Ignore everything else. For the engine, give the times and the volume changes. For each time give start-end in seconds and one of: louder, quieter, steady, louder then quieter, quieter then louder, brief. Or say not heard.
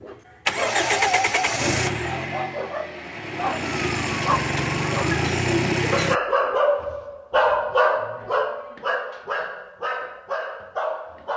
0.5-6.2 quieter then louder.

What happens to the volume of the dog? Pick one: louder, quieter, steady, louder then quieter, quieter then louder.
louder then quieter.